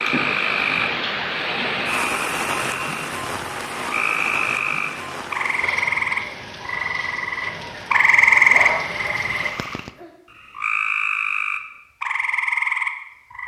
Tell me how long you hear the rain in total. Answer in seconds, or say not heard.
10 s.